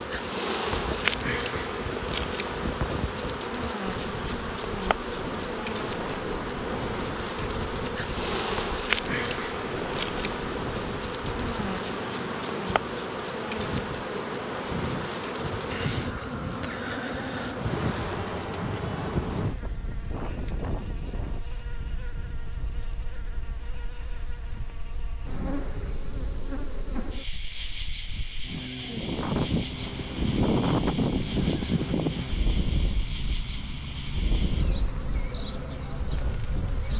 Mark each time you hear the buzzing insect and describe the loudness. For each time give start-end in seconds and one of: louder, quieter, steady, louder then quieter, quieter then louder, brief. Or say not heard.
0.0-36.9 quieter.